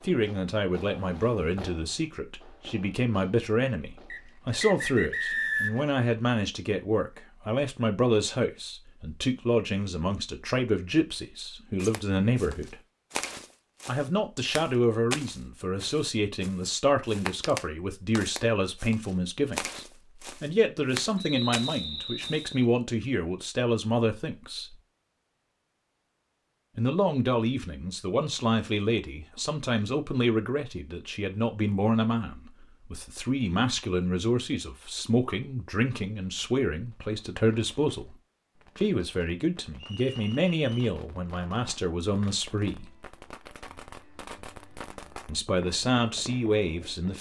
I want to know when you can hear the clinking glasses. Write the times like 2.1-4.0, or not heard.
not heard.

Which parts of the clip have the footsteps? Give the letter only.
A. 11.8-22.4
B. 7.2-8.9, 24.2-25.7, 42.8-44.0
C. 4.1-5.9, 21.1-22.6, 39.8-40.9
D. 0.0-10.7
A.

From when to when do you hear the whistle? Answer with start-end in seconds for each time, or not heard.
4.1-5.9, 21.1-22.6, 39.8-40.9.